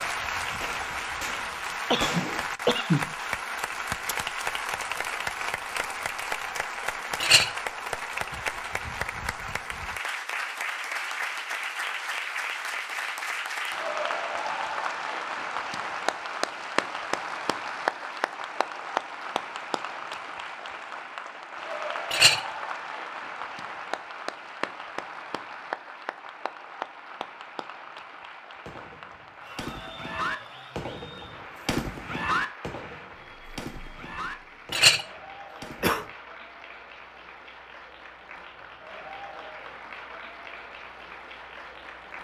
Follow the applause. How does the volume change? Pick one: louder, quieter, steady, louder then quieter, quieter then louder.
quieter.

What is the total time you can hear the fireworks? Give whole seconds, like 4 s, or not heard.
10 s.